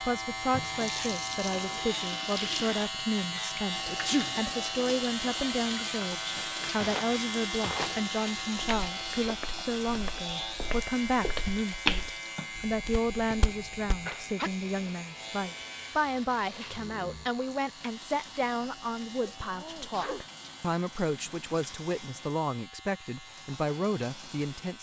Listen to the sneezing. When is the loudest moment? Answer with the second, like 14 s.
4 s.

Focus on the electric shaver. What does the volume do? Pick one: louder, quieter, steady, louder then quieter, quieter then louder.
quieter.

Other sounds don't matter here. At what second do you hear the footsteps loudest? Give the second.
12 s.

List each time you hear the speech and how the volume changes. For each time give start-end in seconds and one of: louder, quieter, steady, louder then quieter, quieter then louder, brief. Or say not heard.
0.0-24.7 steady.